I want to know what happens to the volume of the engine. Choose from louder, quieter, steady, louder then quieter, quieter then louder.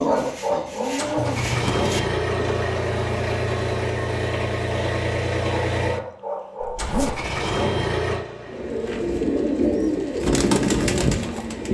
quieter.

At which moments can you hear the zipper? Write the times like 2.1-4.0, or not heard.
1.1-1.9, 6.6-7.2.